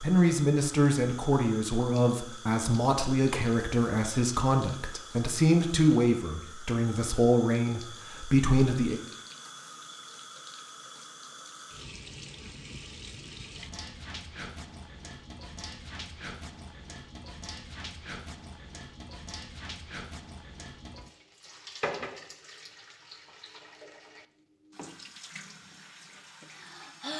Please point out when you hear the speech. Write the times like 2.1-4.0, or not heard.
0.0-9.0.